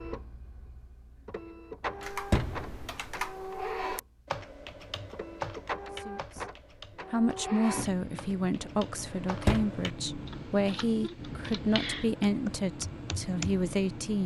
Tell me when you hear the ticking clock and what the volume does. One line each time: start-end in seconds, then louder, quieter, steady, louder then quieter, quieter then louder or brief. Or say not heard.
not heard.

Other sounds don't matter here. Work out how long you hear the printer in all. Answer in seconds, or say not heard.
14 s.